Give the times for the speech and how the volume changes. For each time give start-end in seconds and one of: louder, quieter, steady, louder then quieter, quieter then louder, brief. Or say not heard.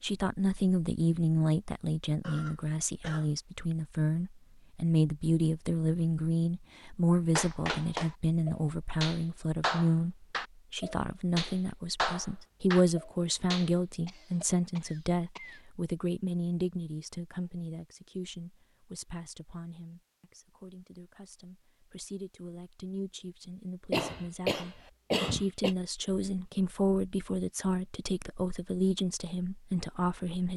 0.0-30.5 quieter then louder.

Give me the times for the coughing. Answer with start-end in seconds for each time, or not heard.
2.2-3.8, 14.1-15.6, 23.9-25.8.